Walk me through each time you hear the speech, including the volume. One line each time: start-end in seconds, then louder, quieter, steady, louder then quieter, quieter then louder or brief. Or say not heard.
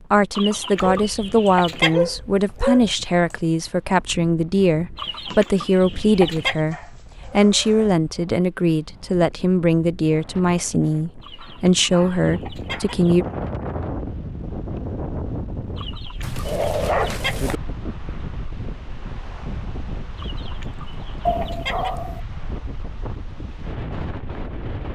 0.1-13.2 steady.